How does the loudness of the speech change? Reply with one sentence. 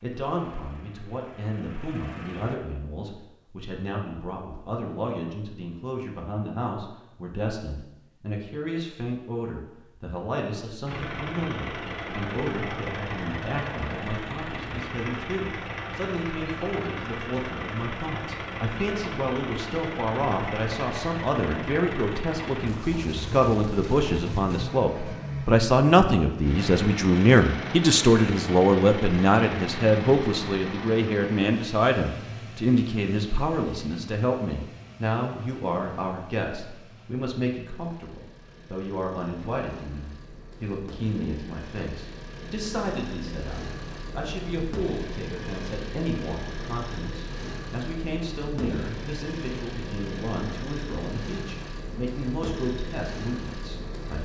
The loudness of the speech goes up, then down.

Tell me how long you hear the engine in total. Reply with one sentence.
The engine can be heard for 46 seconds in total.